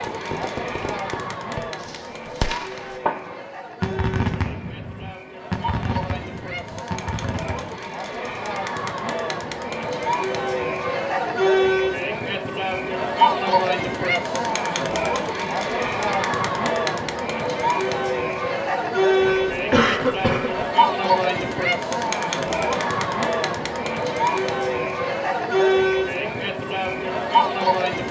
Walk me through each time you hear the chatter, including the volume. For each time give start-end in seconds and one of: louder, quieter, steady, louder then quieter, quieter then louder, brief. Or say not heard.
0.0-28.0 louder.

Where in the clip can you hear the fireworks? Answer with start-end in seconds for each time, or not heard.
0.0-7.8.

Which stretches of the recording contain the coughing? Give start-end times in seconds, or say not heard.
19.2-20.6.